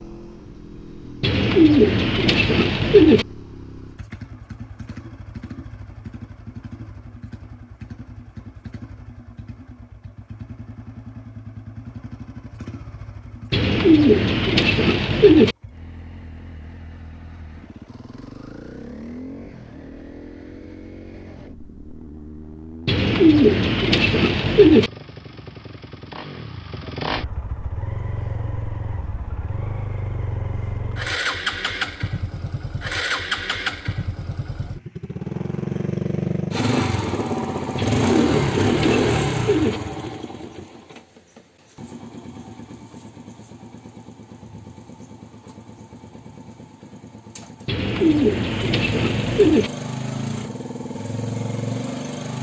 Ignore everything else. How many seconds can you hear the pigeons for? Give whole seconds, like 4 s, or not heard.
10 s.